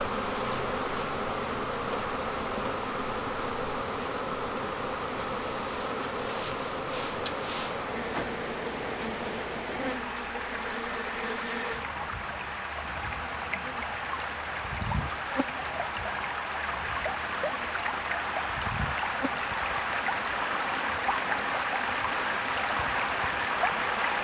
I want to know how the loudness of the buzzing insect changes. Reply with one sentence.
The volume of the buzzing insect goes down.